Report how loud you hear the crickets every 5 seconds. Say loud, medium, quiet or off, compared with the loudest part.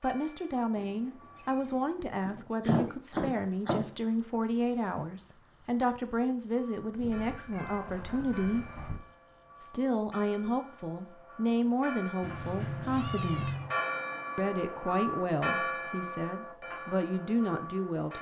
loud, loud, medium, quiet.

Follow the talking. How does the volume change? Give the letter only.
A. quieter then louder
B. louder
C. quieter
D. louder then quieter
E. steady
E.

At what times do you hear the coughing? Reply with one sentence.
You can hear the coughing from 2.6 to 3.9 s.